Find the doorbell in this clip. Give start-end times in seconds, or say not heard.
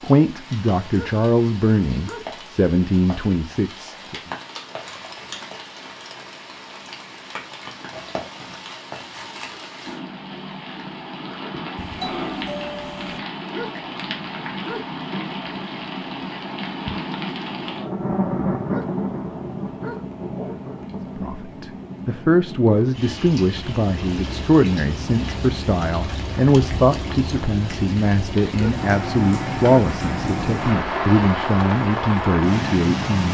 11.8-13.2.